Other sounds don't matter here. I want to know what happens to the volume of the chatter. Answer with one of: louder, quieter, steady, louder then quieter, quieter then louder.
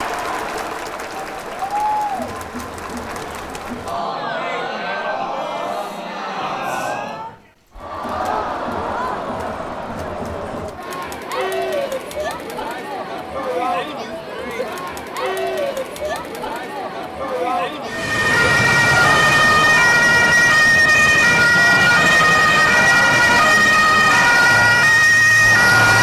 steady.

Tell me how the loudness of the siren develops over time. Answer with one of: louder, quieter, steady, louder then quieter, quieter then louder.
steady.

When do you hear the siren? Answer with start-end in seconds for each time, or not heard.
17.9-25.9.